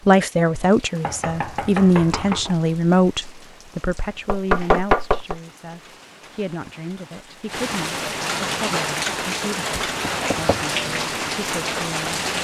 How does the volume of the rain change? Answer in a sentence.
The loudness of the rain goes up.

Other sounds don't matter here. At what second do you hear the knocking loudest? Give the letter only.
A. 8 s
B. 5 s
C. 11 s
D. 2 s
B.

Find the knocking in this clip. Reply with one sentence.
The knocking can be heard from 1.0 to 2.5 s, from 4.2 to 5.4 s and from 10.0 to 10.6 s.